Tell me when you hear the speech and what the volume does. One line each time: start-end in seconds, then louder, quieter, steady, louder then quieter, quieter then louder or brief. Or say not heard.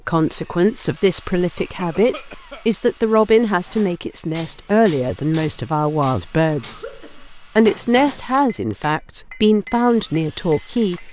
0.1-11.0 steady.